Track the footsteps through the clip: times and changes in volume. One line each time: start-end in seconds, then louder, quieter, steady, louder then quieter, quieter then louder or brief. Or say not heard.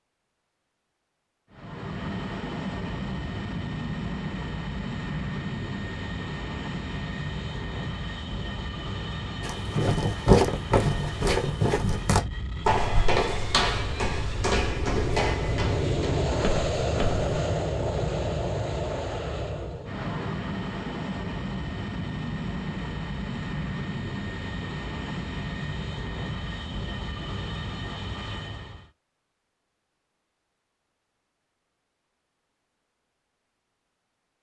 9.4-17.2 quieter.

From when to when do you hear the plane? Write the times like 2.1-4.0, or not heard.
1.5-28.9.